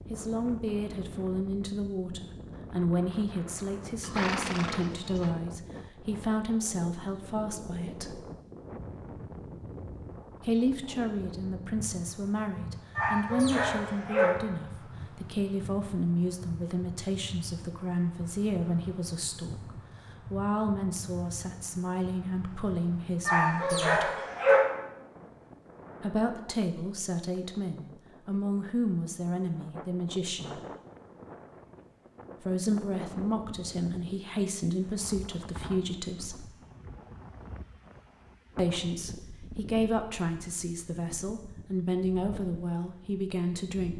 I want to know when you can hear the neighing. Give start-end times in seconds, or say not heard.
4.0-5.3.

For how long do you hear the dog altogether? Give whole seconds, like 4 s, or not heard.
3 s.